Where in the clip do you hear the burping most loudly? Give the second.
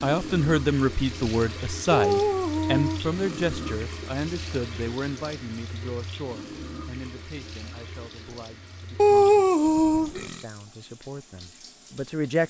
9 s.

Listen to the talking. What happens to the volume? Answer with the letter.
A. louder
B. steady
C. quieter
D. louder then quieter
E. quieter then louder
C.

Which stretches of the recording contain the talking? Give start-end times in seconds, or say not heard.
0.0-12.4.